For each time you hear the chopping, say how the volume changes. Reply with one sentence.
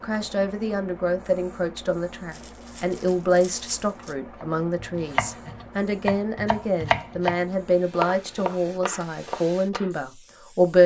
The chopping can be heard from 4.4 to 9.9 s, getting louder then quieter.